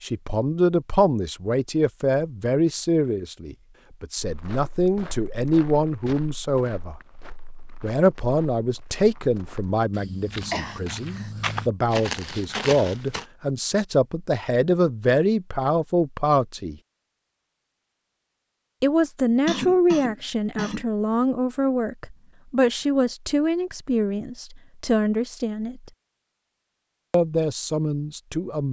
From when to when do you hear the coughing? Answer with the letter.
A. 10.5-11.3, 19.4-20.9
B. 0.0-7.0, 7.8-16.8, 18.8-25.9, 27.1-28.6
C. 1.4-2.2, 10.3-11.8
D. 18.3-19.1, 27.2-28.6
A.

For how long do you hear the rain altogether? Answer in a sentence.
The rain can't be heard in this clip.